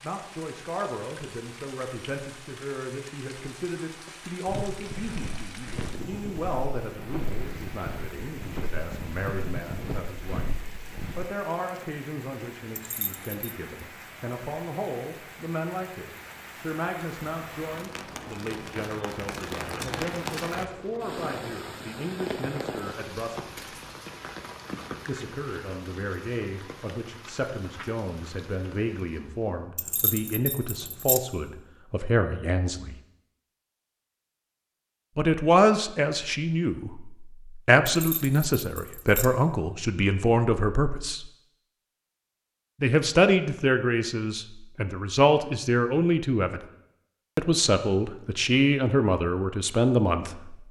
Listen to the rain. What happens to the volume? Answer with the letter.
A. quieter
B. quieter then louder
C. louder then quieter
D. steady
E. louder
C.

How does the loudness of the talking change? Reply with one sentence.
The loudness of the talking goes up.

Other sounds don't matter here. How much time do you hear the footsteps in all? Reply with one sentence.
You can hear the footsteps for 7 seconds altogether.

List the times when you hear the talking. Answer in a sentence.
You can hear the talking from 0.0 to 10.6 s, from 11.2 to 23.6 s, from 25.1 to 33.0 s, from 35.1 to 41.3 s, from 42.8 to 46.6 s and from 47.4 to 50.6 s.